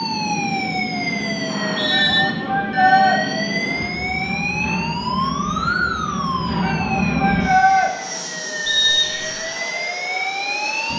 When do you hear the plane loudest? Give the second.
7 s.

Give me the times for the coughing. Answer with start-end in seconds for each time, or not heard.
not heard.